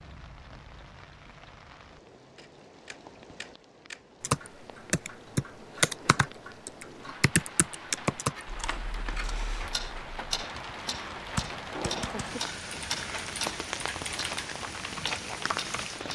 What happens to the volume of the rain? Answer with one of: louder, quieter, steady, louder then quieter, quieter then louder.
louder.